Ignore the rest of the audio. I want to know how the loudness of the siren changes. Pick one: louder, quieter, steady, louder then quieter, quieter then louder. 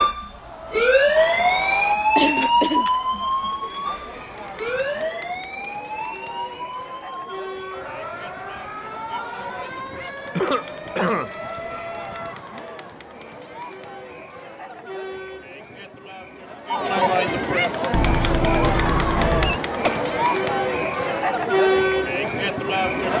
quieter.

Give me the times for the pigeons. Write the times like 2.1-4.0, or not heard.
not heard.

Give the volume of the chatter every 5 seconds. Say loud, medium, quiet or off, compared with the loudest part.
quiet, quiet, quiet, loud, loud.